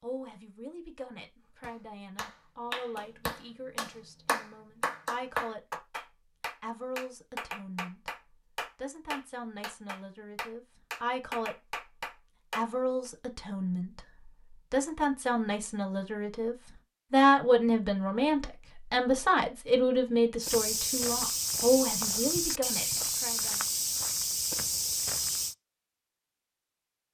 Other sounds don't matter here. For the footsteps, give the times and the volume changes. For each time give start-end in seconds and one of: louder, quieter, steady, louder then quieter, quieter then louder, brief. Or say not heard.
20.4-25.6 steady.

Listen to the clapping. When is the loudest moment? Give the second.
5 s.